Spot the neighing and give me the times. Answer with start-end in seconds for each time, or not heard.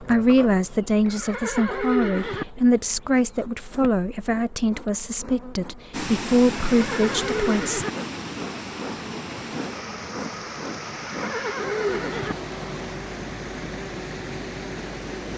1.1-2.5, 6.7-7.9, 10.9-12.3.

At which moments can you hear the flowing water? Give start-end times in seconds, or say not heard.
5.9-15.3.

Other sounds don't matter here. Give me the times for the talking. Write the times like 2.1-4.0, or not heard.
0.0-7.8.